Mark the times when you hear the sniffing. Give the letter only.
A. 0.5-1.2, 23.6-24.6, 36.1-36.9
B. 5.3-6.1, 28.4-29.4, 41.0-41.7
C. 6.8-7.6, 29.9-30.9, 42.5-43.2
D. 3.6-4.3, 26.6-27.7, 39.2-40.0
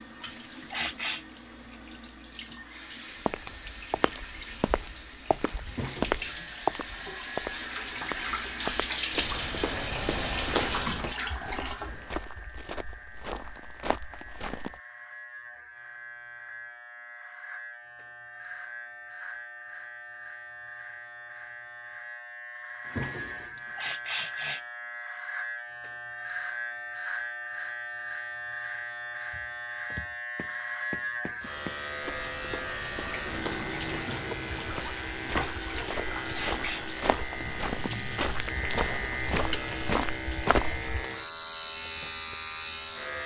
A.